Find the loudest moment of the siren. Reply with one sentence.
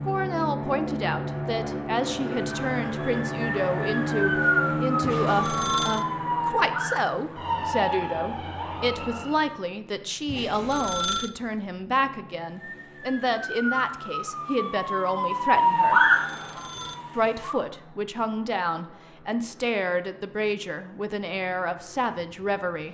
The loudest moment of the siren is at 16 seconds.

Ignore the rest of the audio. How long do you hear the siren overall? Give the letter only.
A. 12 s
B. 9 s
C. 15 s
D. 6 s
A.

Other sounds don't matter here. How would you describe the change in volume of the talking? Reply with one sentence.
The loudness of the talking stays about the same.